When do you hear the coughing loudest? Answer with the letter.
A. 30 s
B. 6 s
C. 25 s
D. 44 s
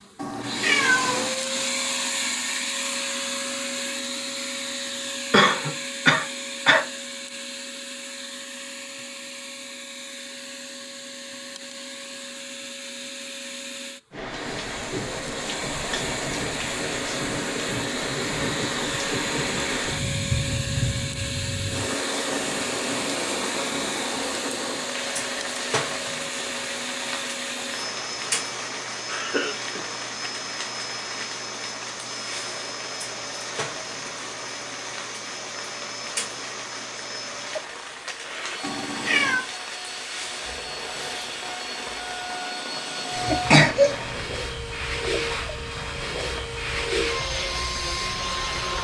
D.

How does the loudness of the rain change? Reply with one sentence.
The loudness of the rain goes down.